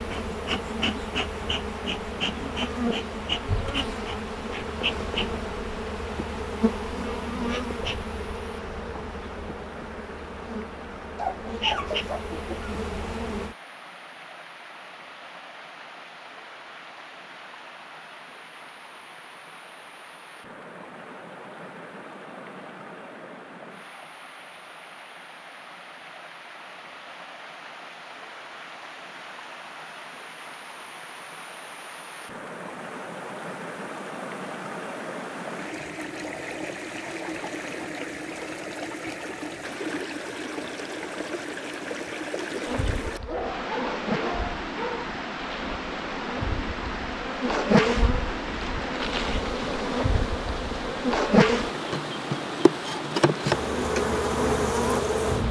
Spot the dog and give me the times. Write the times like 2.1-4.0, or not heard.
11.2-12.6, 43.0-45.1.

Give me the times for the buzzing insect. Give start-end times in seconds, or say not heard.
0.0-13.6, 42.6-55.4.